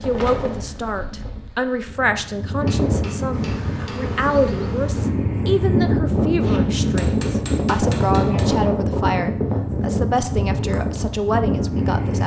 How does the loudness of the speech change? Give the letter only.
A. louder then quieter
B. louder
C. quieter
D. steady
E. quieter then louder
D.